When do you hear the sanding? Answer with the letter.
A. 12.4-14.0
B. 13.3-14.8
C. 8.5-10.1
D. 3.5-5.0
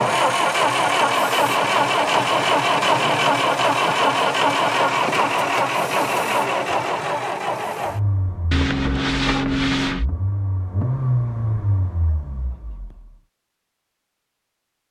C.